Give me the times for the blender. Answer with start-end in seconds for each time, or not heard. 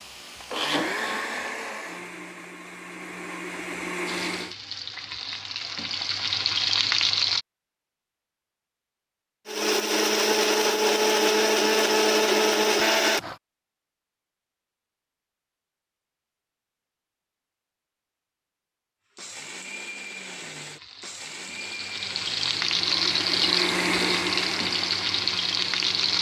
0.0-4.5, 9.4-13.3, 19.1-26.1.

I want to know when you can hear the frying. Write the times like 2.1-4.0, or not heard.
4.0-7.5, 20.6-26.1.